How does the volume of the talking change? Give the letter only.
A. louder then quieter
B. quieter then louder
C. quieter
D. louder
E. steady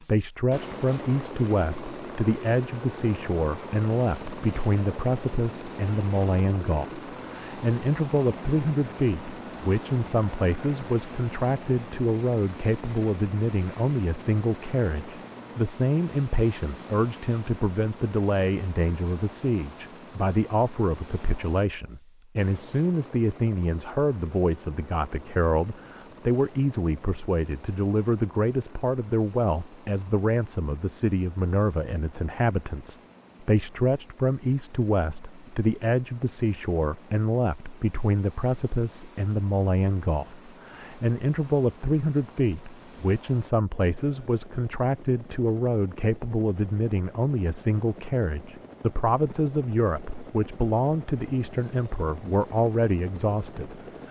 E.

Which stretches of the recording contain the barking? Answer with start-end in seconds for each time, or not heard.
not heard.